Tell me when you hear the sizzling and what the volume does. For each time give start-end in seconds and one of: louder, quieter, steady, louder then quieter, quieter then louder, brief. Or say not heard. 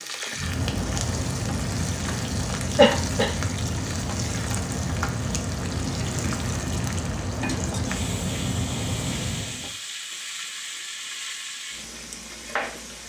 0.0-13.0 steady.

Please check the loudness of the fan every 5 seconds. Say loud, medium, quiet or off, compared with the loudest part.
loud, loud, off.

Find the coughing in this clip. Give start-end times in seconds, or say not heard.
2.8-3.3.